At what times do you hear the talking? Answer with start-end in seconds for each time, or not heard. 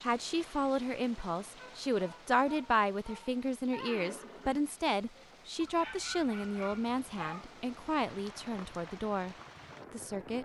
0.0-10.3.